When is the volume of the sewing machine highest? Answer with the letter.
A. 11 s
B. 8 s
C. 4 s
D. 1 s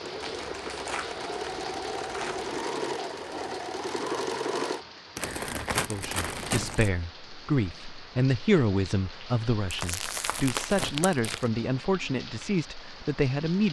C.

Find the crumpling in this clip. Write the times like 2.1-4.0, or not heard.
0.2-2.5, 5.2-6.9, 9.7-11.4.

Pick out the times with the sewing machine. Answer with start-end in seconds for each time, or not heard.
0.0-4.8.